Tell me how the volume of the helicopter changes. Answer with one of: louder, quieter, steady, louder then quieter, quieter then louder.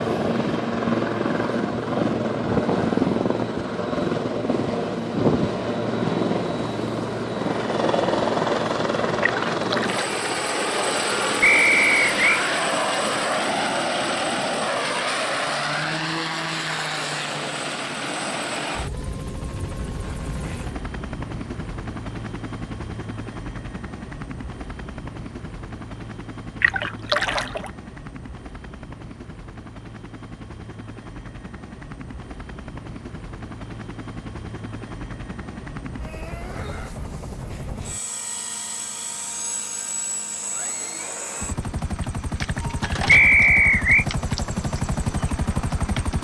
quieter then louder.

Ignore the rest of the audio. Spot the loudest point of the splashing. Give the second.
27 s.